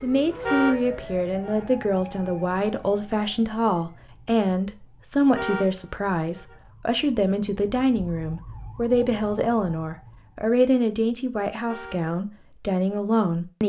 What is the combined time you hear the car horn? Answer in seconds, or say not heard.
3 s.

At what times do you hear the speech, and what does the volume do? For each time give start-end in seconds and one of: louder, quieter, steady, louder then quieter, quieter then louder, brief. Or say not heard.
0.0-13.6 steady.